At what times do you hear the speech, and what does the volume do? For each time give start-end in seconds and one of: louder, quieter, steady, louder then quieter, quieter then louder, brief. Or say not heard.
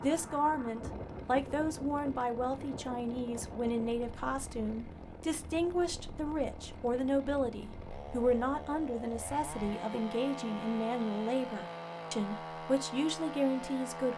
0.0-14.1 steady.